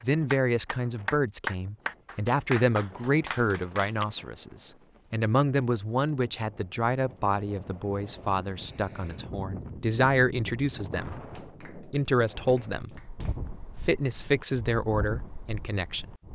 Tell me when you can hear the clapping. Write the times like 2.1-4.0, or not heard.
0.0-4.0, 11.2-13.4.